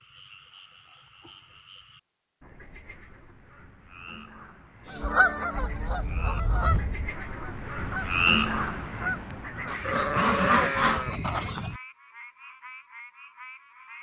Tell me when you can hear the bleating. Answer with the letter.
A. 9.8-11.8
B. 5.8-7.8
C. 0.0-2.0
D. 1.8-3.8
A.